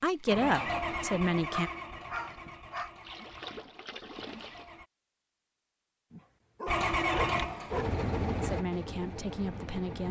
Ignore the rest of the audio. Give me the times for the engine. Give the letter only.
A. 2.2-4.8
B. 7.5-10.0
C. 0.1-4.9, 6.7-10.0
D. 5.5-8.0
C.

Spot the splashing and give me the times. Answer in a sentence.
The splashing can be heard from 2.2 to 4.8 s.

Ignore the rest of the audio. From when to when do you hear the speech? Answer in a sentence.
The speech can be heard from 0.0 to 1.7 s and from 8.2 to 10.0 s.